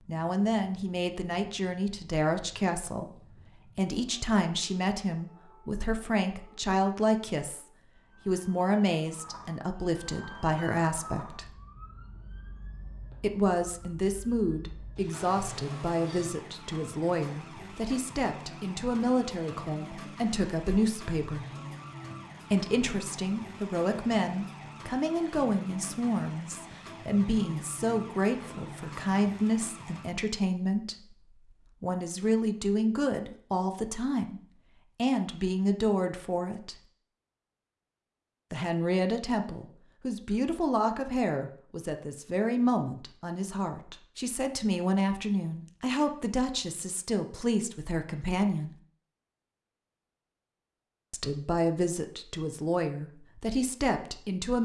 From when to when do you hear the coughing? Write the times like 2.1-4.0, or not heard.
not heard.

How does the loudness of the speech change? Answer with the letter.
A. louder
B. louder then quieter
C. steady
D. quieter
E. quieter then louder
C.